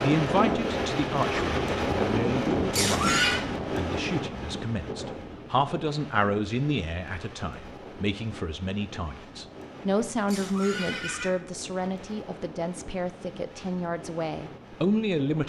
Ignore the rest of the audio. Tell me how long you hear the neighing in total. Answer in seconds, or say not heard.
2 s.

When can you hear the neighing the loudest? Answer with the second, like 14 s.
3 s.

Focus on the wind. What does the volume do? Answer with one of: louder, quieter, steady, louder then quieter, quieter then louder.
quieter.